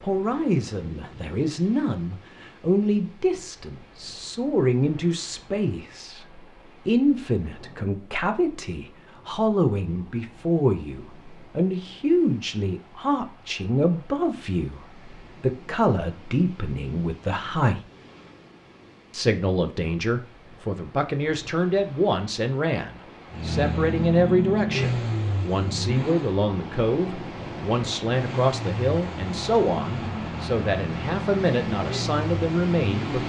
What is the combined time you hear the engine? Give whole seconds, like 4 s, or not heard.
8 s.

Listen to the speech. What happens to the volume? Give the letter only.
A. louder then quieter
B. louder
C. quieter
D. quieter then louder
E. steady
E.